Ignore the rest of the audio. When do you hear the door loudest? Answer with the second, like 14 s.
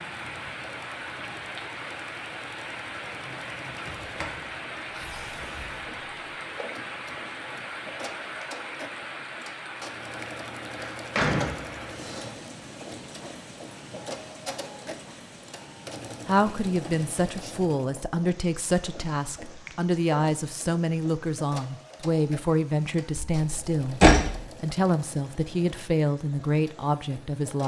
24 s.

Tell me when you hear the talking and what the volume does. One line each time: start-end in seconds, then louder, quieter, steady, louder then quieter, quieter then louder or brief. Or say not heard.
16.2-27.6 steady.